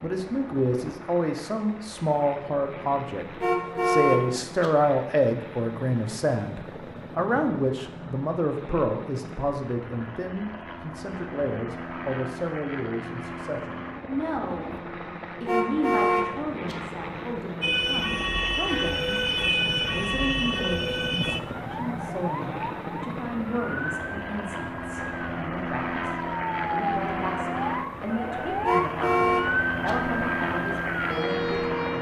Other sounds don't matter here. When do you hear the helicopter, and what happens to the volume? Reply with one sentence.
The helicopter can be heard from 0.0 to 31.9 s, getting louder.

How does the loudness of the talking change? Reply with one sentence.
The volume of the talking goes down.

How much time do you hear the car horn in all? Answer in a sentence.
The car horn can be heard for 4 seconds in total.